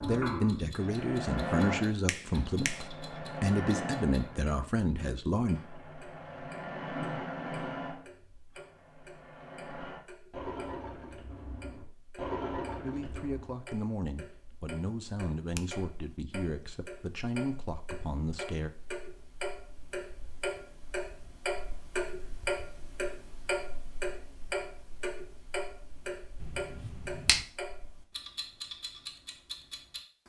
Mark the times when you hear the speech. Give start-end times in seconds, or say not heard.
0.0-5.6, 12.8-18.7.